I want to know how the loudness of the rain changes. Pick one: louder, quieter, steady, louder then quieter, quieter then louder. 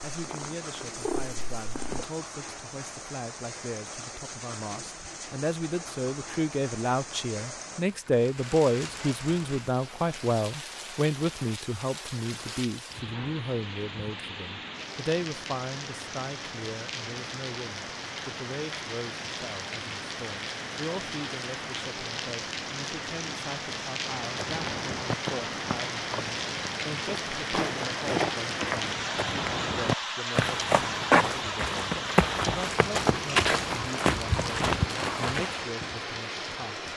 louder.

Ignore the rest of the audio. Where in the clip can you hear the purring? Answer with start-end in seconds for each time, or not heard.
0.1-2.0.